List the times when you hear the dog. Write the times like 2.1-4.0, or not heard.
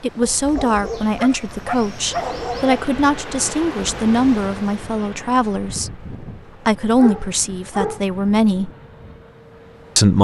0.2-2.9, 7.0-8.1.